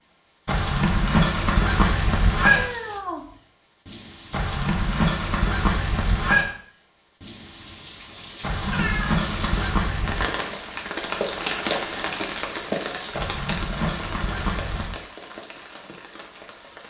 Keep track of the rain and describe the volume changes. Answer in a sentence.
The volume of the rain goes up, then down.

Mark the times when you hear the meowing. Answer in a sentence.
You can hear the meowing from 2.5 to 3.4 s and from 8.6 to 9.5 s.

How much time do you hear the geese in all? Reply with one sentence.
You can hear the geese for 8 seconds altogether.